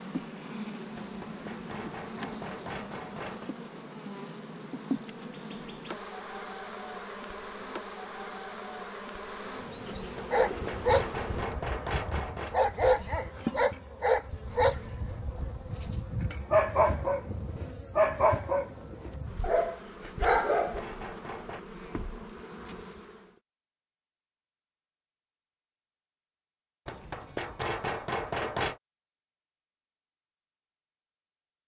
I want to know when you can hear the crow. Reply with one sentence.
The crow can't be heard in this clip.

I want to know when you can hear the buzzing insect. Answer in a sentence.
The buzzing insect can be heard from 0.0 to 23.3 s.